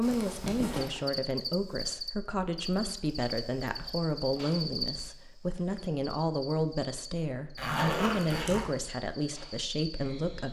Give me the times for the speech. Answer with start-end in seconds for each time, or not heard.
0.0-10.4.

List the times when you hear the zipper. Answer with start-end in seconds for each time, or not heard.
0.0-1.0, 7.5-8.7.